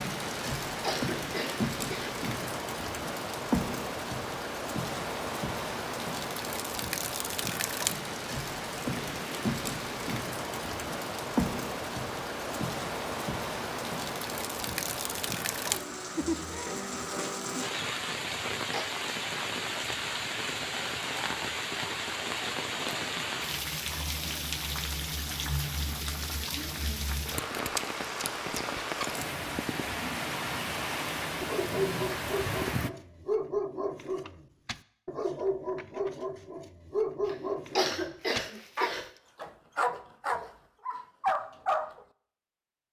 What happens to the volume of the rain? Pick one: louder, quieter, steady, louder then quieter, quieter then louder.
steady.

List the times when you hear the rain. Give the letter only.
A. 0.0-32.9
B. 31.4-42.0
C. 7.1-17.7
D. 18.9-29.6
A.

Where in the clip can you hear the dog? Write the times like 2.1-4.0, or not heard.
31.4-42.0.